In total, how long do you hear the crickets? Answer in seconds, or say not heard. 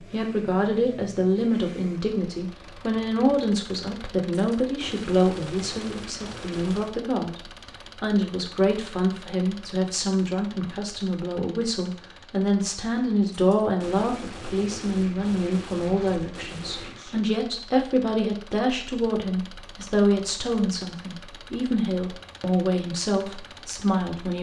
not heard.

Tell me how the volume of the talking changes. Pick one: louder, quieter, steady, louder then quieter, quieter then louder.
steady.